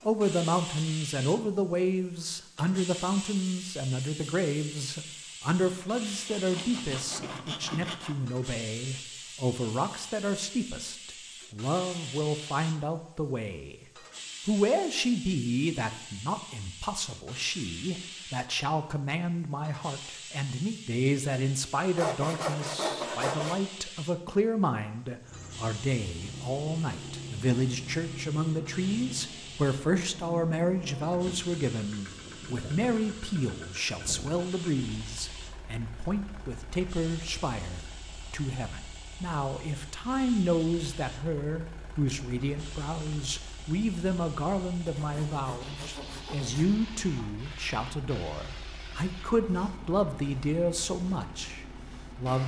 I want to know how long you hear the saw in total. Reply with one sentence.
The saw can be heard for 6 seconds in total.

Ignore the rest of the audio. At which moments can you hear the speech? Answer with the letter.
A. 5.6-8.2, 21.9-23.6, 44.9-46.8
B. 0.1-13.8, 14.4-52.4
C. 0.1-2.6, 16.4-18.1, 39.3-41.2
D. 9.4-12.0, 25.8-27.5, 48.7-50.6
B.